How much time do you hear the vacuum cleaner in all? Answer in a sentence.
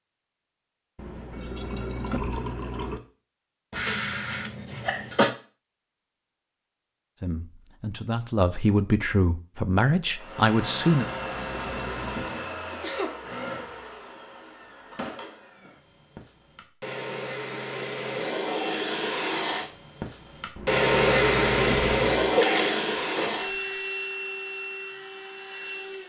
You can hear the vacuum cleaner for 16 seconds altogether.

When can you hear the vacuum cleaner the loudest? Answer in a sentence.
The loudest moment of the vacuum cleaner is at 21 seconds.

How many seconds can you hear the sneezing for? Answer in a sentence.
The sneezing can be heard for 3 seconds in total.